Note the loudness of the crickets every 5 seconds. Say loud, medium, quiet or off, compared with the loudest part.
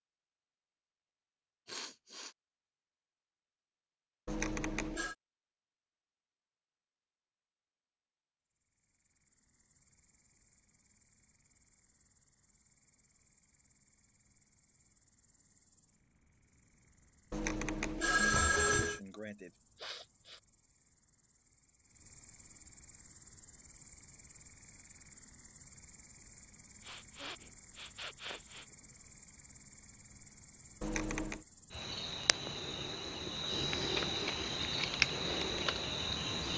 off, quiet, quiet, quiet, quiet, quiet, medium, loud.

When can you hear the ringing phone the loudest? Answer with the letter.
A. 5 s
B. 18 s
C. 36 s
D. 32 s
B.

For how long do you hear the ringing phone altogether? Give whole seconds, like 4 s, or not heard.
3 s.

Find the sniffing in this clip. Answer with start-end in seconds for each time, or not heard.
1.6-2.4, 18.6-20.4, 26.8-28.9.